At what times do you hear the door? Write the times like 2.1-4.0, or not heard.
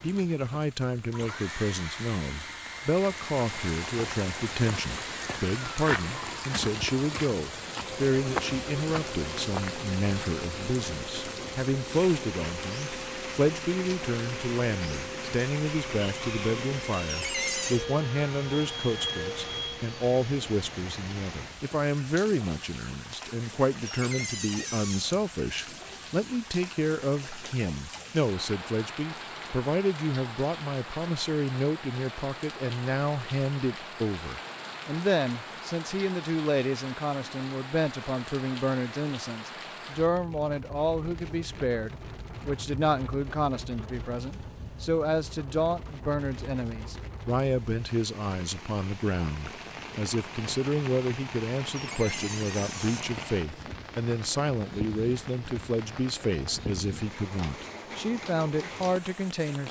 17.1-17.9, 23.9-25.2, 51.8-53.1.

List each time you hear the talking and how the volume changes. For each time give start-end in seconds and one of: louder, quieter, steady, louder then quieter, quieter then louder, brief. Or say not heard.
0.0-59.6 steady.